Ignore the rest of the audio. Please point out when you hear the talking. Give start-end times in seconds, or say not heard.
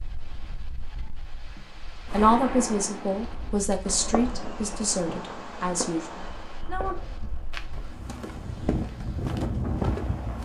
2.1-7.0.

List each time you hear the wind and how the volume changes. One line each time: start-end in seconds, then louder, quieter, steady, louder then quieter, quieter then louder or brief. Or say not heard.
0.0-10.4 louder.